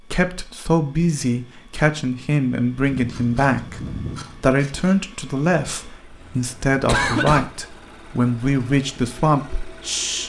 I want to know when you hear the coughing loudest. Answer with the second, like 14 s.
7 s.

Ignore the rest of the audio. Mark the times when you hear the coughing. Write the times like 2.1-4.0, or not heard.
5.8-7.5.